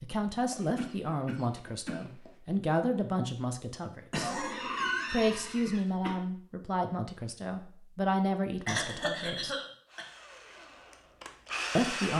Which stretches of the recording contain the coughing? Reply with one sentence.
You can hear the coughing from 0.5 to 2.3 s, from 4.1 to 6.2 s and from 8.7 to 10.1 s.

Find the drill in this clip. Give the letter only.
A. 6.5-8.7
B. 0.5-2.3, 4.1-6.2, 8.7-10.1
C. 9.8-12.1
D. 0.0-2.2
C.